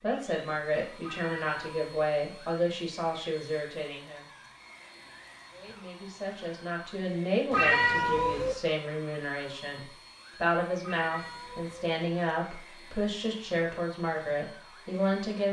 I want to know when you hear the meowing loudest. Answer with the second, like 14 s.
8 s.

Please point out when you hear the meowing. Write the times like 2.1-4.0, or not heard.
1.0-1.9, 7.5-8.6, 10.8-11.8.